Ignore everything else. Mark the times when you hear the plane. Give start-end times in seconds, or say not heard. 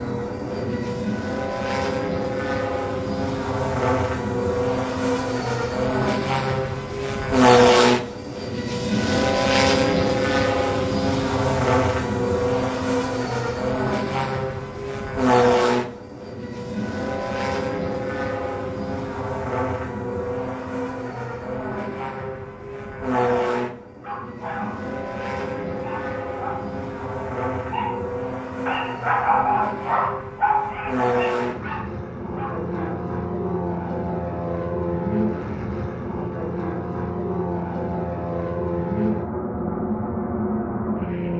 0.0-41.3.